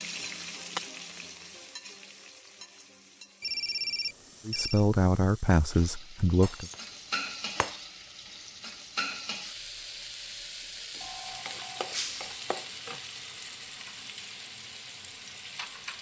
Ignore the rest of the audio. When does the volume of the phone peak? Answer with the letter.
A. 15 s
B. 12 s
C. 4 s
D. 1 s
C.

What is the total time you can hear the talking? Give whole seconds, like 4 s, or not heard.
2 s.